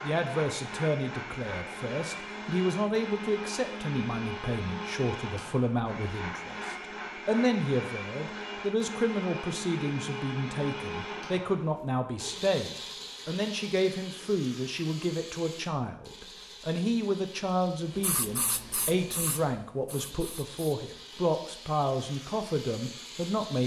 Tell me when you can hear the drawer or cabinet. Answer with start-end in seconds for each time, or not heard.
not heard.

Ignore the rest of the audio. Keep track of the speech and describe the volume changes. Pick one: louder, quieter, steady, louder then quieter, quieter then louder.
steady.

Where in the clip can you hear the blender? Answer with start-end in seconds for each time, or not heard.
0.0-23.6.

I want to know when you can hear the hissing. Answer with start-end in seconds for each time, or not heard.
17.9-20.6.